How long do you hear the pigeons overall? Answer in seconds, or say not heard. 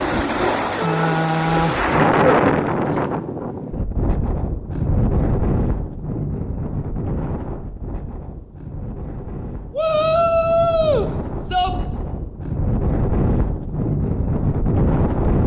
3 s.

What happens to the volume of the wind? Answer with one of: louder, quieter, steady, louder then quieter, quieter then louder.
quieter then louder.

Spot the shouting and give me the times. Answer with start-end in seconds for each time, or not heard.
0.8-1.2, 9.7-11.7.